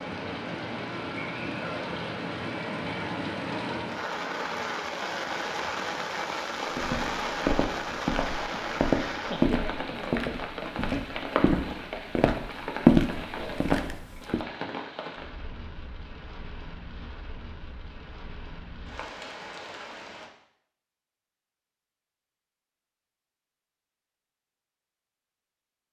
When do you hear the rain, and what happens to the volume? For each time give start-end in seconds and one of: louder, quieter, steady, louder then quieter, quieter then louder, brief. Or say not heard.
0.0-20.3 quieter.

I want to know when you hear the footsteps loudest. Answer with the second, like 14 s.
13 s.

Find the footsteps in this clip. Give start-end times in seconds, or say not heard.
6.7-14.4.